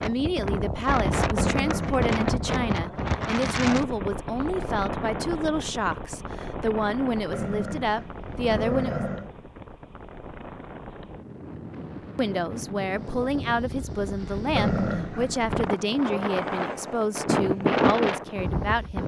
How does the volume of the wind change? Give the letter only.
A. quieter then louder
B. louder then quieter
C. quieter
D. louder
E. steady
A.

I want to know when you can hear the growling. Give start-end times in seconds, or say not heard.
1.4-2.7, 7.3-9.3, 14.6-15.8.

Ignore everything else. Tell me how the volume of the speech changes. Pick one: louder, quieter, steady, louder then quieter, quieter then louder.
steady.